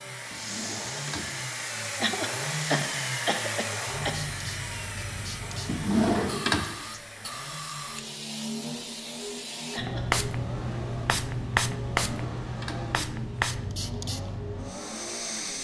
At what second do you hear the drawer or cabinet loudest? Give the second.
6 s.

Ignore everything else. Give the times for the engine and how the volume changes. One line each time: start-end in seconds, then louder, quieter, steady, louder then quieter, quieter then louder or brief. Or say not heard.
0.0-15.5 quieter.